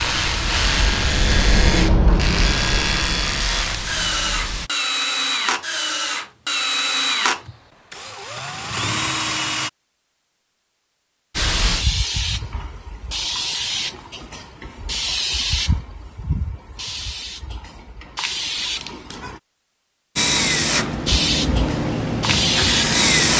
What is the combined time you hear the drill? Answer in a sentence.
The drill can be heard for 13 seconds in total.